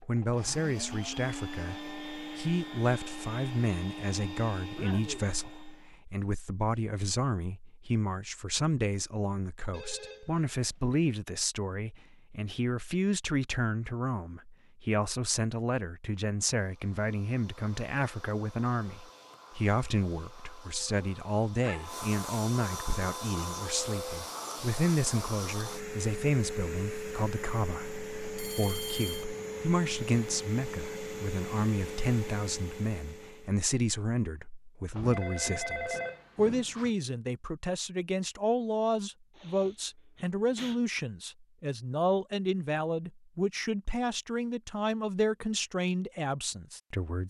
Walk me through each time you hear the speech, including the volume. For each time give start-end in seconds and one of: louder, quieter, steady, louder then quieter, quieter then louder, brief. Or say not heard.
0.0-47.2 steady.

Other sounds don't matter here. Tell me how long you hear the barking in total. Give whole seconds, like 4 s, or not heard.
not heard.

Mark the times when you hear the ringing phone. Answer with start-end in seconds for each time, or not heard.
9.7-11.1, 28.4-29.2, 34.9-36.9.